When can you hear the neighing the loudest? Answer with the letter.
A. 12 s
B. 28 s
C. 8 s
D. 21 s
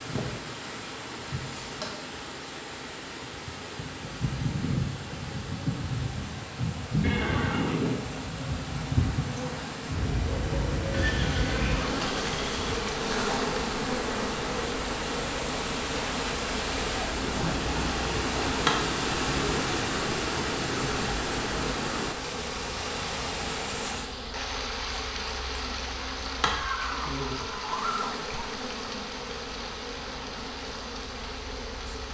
C.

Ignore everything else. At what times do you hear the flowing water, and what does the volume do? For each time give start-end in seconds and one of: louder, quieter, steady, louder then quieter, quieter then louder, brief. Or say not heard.
0.0-32.0 louder then quieter.